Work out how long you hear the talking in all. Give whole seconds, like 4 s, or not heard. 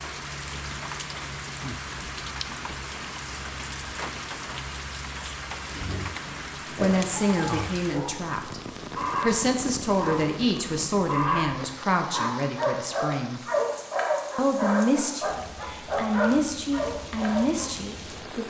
10 s.